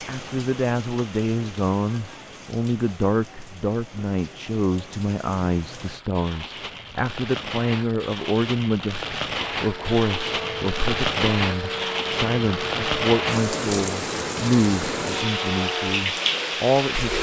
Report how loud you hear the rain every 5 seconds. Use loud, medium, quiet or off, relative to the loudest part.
quiet, medium, loud, loud.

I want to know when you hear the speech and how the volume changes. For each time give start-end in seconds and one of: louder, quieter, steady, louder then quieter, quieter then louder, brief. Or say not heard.
0.1-17.1 steady.